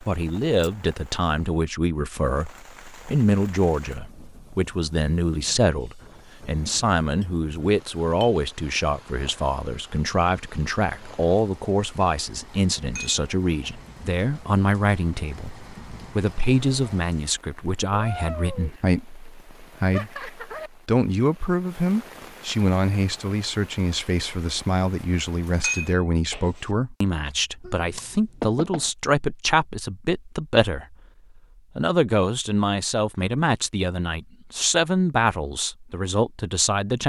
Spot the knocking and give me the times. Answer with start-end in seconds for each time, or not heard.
27.6-28.9.